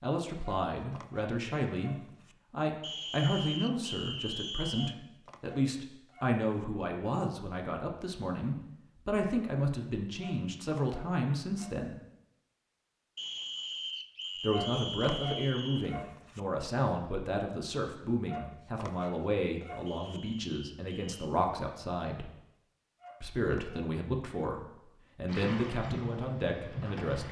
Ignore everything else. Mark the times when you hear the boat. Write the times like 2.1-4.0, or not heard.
25.2-27.2.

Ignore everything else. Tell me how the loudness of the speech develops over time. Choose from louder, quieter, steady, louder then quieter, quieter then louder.
steady.